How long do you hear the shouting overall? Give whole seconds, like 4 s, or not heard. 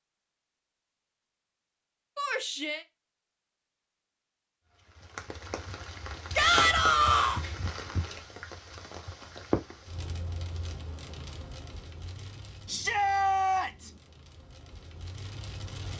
3 s.